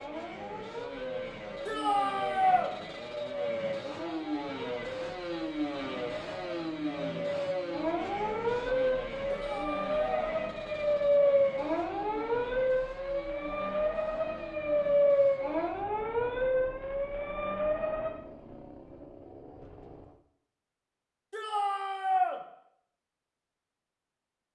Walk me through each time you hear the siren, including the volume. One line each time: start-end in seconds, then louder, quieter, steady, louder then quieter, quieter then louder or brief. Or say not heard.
0.0-18.1 louder.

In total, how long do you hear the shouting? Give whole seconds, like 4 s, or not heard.
3 s.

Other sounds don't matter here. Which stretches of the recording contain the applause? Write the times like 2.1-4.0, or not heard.
not heard.